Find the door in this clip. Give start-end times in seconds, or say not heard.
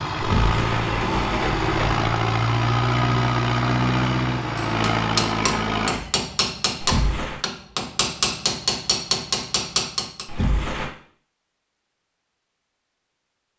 0.2-2.0, 6.8-7.4, 10.2-10.9.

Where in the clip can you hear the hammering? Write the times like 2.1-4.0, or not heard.
4.5-10.3.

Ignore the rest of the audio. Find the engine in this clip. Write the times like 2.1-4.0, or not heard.
0.0-6.1.